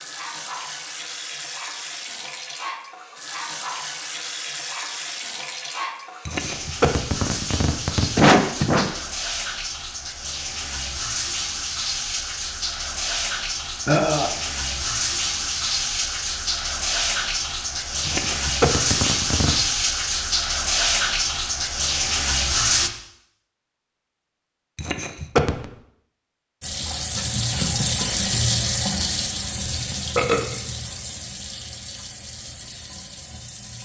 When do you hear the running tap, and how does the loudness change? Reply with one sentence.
The running tap can be heard from 0.0 to 22.9 s, getting louder; and from 26.6 to 33.7 s, getting quieter.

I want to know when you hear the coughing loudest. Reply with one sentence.
The loudest moment of the coughing is at 8 seconds.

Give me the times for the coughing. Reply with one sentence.
You can hear the coughing from 6.2 to 8.9 s, from 18.1 to 19.6 s and from 24.8 to 25.7 s.